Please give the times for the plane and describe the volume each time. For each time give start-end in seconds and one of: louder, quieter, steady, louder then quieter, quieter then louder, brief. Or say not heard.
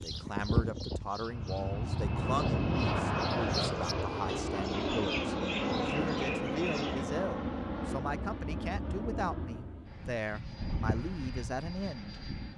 0.0-12.5 quieter.